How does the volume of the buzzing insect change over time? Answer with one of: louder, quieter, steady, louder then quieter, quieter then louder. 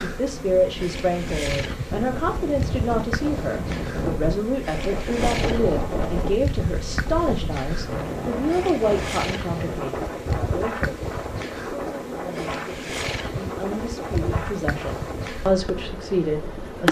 steady.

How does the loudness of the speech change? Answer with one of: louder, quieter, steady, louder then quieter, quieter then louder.
quieter then louder.